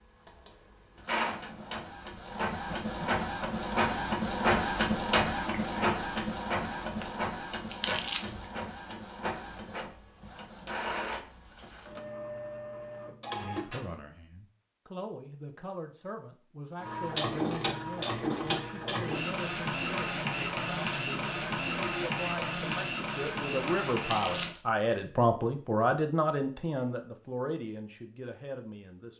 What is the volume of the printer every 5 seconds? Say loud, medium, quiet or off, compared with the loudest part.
loud, loud, medium, loud, loud, off.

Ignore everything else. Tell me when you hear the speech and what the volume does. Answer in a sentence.
You can hear the speech from 13.3 to 29.1 s, getting louder.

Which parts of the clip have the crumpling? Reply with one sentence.
You can hear the crumpling from 7.7 to 8.3 s and from 23.9 to 24.6 s.